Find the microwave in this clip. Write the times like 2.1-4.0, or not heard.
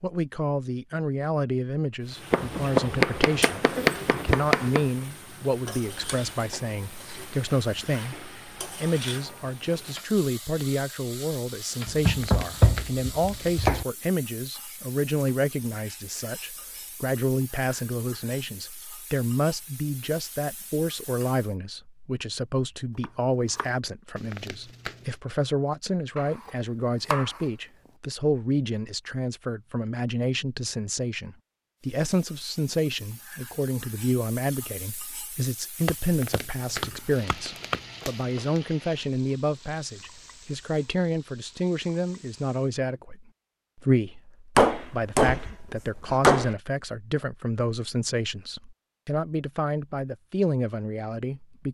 not heard.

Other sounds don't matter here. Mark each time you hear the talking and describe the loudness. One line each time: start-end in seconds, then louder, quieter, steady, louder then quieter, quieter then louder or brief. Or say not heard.
0.0-51.6 steady.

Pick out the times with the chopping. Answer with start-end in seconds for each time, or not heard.
2.3-4.8, 11.8-13.8, 23.0-23.7, 26.1-27.4, 35.9-37.8, 44.5-46.5.